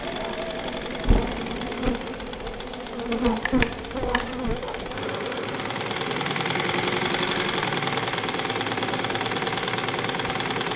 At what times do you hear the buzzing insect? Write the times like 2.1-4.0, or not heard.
0.0-10.7.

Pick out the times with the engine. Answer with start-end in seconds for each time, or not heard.
0.0-10.7.